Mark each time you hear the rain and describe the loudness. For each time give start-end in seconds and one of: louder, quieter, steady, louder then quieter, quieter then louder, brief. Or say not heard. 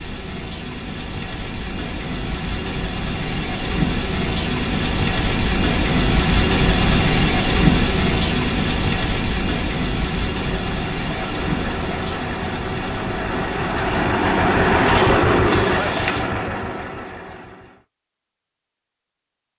0.0-16.2 louder then quieter.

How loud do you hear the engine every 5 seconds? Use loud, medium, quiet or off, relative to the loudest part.
off, off, loud, loud.